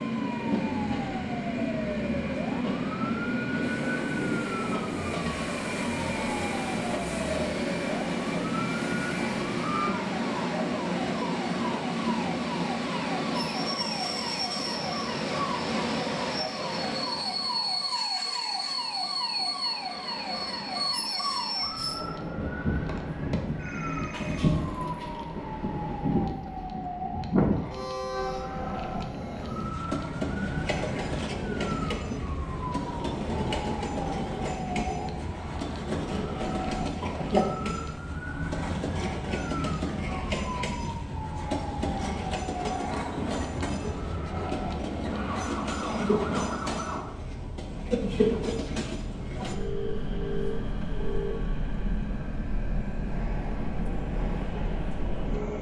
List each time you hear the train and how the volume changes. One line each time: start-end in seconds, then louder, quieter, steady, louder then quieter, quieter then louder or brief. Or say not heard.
0.0-55.5 steady.